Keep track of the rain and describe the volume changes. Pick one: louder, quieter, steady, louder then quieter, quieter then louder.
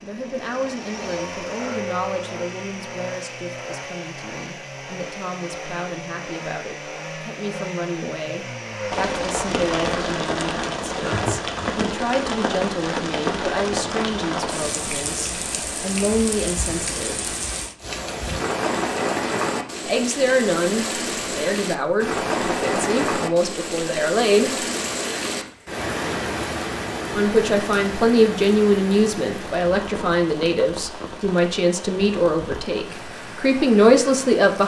quieter.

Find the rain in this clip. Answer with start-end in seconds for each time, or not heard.
8.9-34.6.